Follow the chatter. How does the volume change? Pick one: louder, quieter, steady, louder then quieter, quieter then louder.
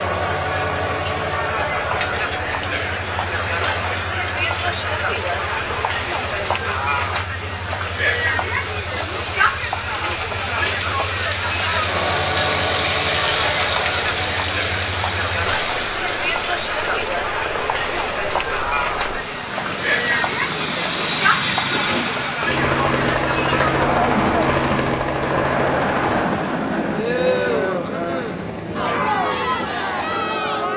steady.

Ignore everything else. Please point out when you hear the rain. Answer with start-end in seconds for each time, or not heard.
0.0-17.1.